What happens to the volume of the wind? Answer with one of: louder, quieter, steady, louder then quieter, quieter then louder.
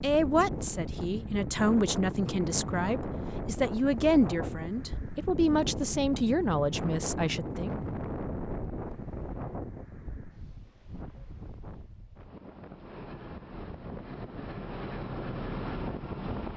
quieter then louder.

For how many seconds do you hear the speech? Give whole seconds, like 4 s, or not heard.
8 s.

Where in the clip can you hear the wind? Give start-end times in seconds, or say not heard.
0.0-16.5.